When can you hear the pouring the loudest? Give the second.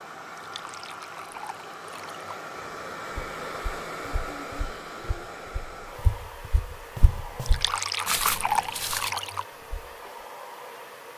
8 s.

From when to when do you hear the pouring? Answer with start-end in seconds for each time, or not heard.
0.3-2.3, 7.5-9.4.